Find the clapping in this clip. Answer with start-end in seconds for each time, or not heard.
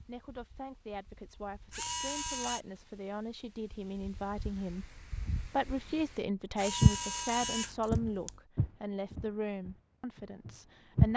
not heard.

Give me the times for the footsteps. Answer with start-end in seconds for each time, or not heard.
6.8-11.1.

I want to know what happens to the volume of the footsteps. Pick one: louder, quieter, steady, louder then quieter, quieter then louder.
louder then quieter.